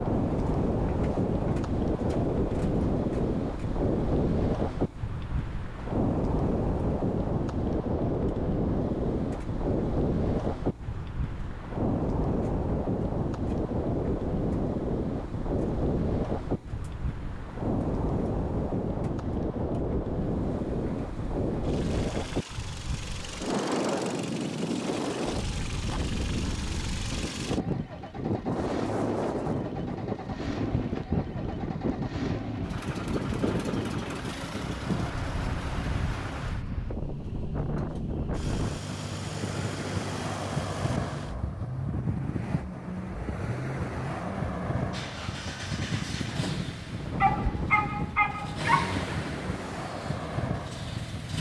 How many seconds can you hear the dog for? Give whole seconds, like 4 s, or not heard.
2 s.